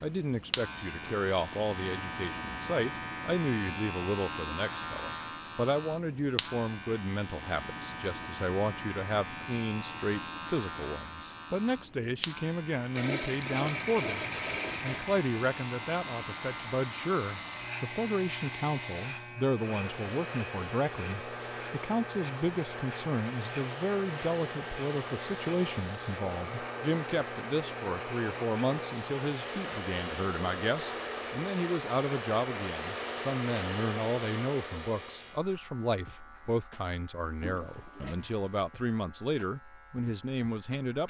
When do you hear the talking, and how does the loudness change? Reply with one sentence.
You can hear the talking from 0.0 to 41.0 s, at a steady volume.